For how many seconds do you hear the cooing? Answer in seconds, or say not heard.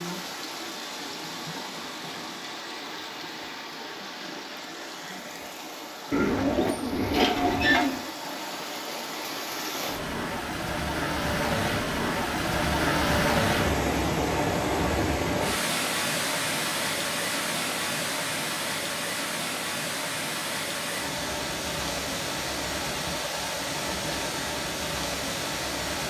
2 s.